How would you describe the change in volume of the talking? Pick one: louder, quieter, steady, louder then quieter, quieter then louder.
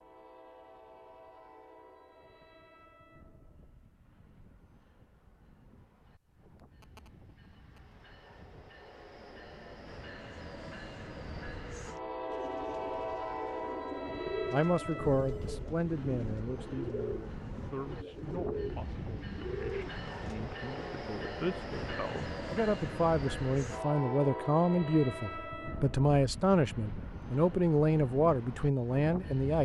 quieter then louder.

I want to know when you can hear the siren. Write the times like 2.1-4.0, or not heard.
not heard.